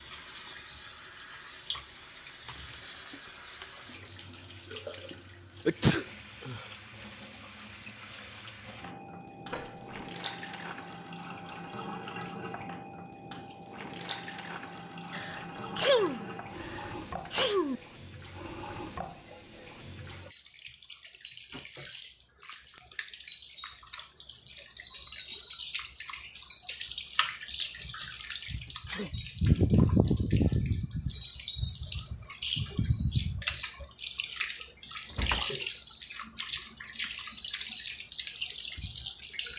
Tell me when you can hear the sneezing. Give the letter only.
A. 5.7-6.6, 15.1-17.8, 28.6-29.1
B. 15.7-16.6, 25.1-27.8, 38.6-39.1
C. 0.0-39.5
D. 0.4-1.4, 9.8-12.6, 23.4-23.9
A.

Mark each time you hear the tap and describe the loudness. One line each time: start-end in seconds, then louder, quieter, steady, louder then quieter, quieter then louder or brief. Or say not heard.
0.0-39.5 louder.